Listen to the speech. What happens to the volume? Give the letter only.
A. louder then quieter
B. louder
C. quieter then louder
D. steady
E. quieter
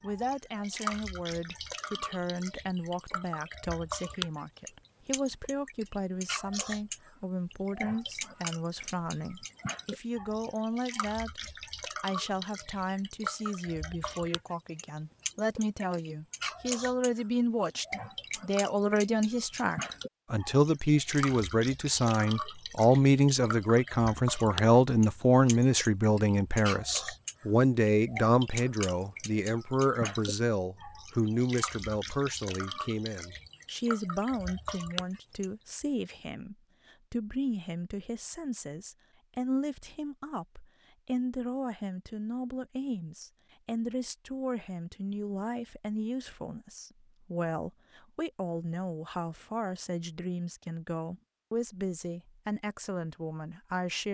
A.